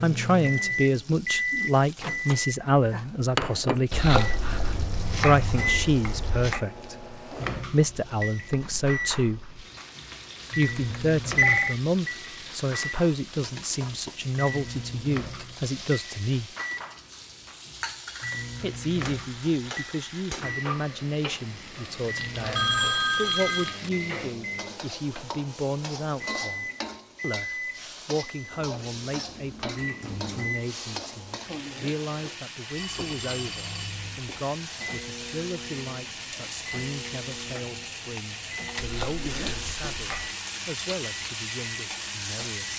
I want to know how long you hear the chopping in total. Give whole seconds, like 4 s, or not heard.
4 s.